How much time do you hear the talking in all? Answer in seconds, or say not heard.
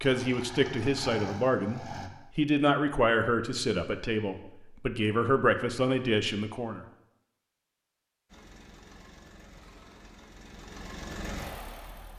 7 s.